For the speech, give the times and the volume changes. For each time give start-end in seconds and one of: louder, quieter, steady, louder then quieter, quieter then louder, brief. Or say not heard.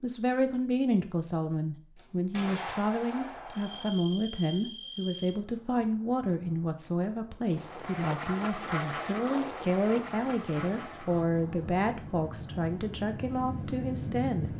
0.0-14.5 steady.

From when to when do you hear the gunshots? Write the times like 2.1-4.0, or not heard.
1.9-3.9.